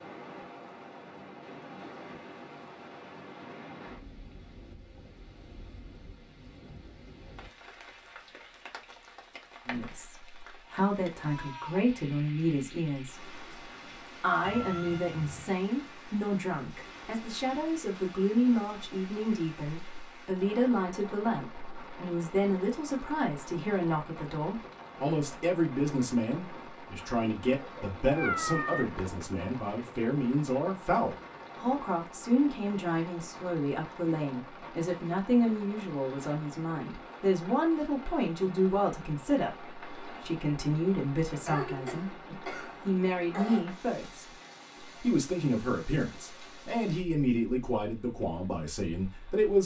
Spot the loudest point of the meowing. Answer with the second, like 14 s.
28 s.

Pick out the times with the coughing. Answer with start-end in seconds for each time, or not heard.
41.2-43.6.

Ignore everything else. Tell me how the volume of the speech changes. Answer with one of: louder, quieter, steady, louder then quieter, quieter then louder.
steady.